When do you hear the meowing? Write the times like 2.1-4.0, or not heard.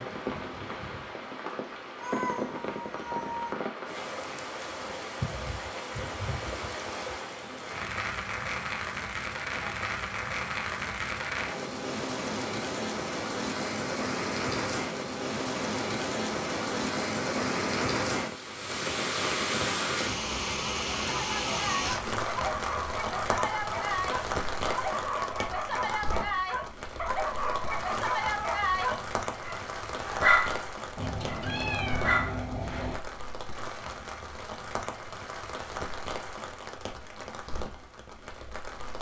1.9-3.5, 30.9-33.0.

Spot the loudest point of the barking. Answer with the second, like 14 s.
30 s.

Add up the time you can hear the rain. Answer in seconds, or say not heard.
39 s.